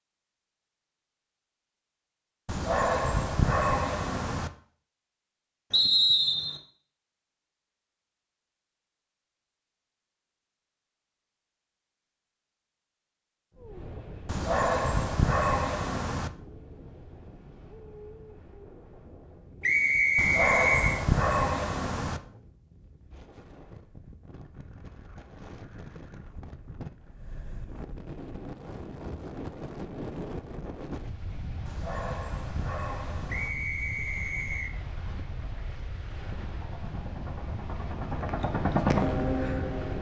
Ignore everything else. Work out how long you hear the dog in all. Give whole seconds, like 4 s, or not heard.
8 s.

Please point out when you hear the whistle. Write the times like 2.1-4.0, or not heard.
5.7-6.6, 19.6-21.0, 33.3-34.8.